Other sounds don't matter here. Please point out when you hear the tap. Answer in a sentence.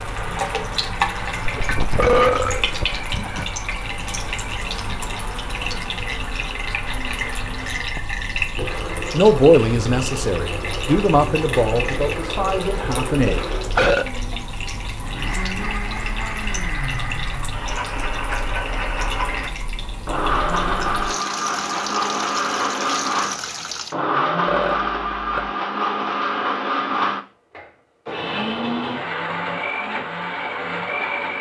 You can hear the tap from 0.0 to 23.9 s.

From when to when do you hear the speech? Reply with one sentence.
You can hear the speech from 9.1 to 13.4 s.